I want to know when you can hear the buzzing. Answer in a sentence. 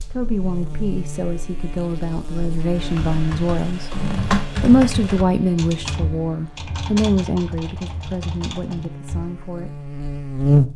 The buzzing can be heard from 0.0 to 10.7 s.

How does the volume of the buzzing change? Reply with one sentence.
The loudness of the buzzing goes down, then up.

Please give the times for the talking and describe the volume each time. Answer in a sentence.
The talking can be heard from 0.1 to 9.8 s, getting louder then quieter.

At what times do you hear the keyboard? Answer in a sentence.
You can hear the keyboard from 2.8 to 9.2 s.